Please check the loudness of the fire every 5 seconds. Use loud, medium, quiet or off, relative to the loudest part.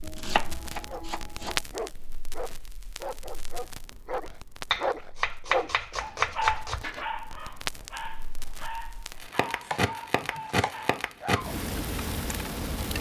medium, medium, loud.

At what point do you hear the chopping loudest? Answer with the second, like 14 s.
6 s.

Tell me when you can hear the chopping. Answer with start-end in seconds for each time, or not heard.
0.0-1.6, 4.7-6.8, 9.6-10.8.